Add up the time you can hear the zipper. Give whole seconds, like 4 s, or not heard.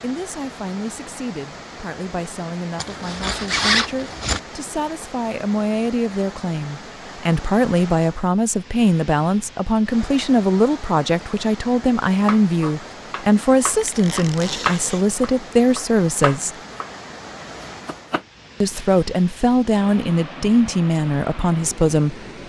3 s.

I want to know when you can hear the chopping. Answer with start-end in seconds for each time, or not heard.
12.2-16.9, 17.6-18.2.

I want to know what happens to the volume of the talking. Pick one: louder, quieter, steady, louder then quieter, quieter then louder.
louder.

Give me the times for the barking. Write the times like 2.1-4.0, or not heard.
not heard.